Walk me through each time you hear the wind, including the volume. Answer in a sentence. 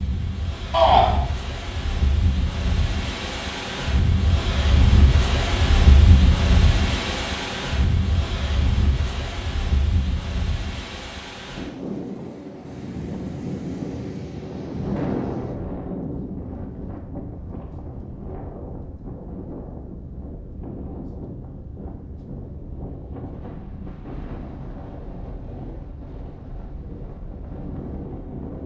The wind can be heard from 0.0 to 28.6 s, getting quieter.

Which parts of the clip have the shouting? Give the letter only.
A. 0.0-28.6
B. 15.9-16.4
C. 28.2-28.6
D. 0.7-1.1
D.